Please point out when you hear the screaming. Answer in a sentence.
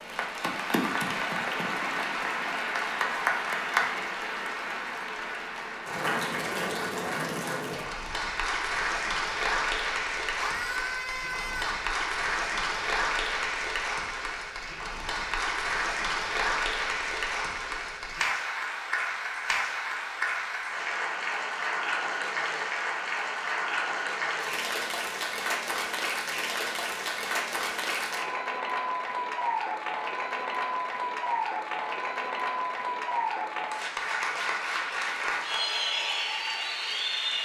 You can hear the screaming from 10.3 to 11.8 s.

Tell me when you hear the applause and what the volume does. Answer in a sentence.
The applause can be heard from 0.0 to 37.4 s, at a steady volume.